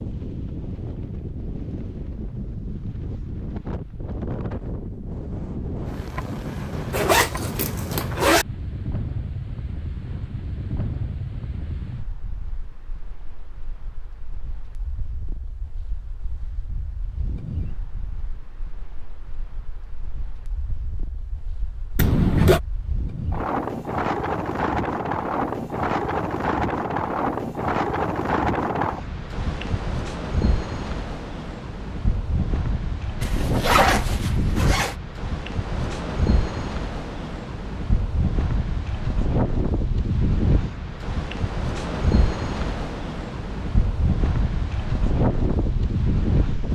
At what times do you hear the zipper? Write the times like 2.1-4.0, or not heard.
6.9-8.4, 21.9-22.6, 33.2-35.0.